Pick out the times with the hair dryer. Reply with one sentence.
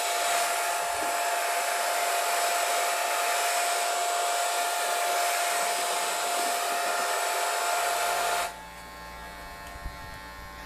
The hair dryer can be heard from 0.0 to 10.6 s.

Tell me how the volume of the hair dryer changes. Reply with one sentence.
The volume of the hair dryer goes down.